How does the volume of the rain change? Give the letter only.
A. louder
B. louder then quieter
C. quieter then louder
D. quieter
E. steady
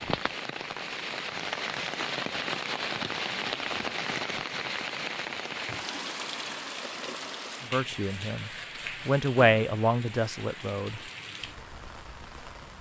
D.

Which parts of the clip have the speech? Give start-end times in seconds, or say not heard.
7.6-11.0.